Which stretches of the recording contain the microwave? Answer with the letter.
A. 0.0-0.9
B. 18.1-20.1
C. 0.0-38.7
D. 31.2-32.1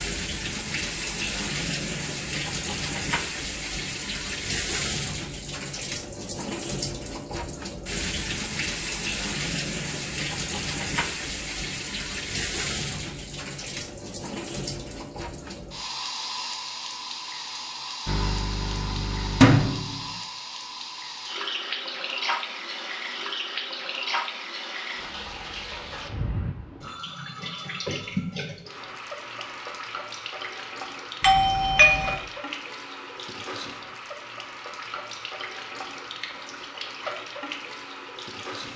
B.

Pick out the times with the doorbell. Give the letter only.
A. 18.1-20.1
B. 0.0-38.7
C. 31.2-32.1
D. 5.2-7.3
C.